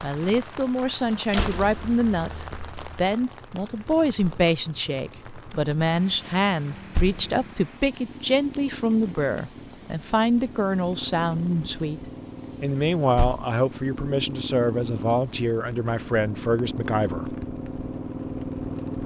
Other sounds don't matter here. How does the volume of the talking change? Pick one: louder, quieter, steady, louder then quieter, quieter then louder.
steady.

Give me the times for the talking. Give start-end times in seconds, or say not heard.
0.0-17.4.